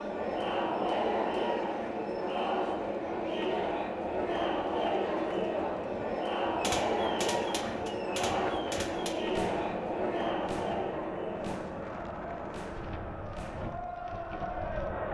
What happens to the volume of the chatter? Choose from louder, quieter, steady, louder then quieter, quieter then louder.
quieter.